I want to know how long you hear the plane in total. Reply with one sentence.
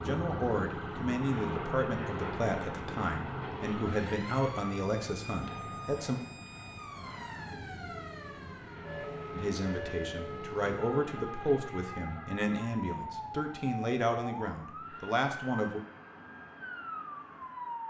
The plane can be heard for 18 seconds in total.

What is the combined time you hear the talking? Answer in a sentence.
You can hear the talking for 13 seconds altogether.